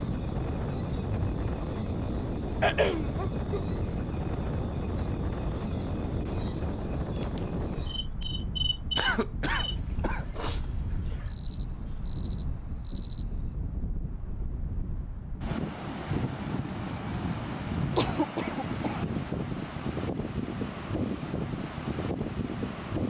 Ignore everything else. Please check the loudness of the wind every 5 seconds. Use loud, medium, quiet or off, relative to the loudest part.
loud, loud, medium, loud, loud.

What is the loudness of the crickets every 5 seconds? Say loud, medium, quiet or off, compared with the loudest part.
loud, loud, loud, off, off.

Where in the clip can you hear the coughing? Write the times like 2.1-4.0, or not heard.
2.6-3.6, 8.9-10.2, 17.9-19.1.